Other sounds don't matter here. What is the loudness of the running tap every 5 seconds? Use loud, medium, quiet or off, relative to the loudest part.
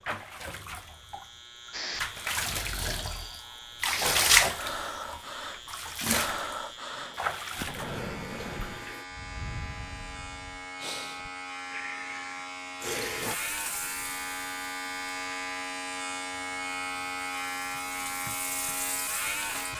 loud, medium, medium, quiet.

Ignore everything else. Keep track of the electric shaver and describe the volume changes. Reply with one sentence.
The volume of the electric shaver goes up.